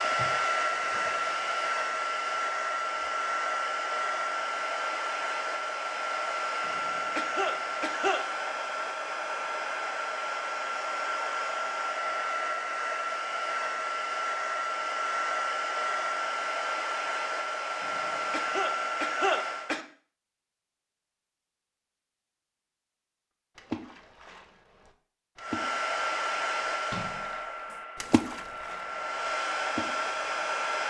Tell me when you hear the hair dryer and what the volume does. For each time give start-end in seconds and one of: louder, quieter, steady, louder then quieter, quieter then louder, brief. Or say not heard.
0.0-19.8 steady
25.4-30.8 quieter then louder.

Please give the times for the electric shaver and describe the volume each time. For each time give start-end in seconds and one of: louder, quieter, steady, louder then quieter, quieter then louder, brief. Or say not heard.
not heard.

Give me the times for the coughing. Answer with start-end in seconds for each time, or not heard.
6.7-8.2, 17.8-19.9.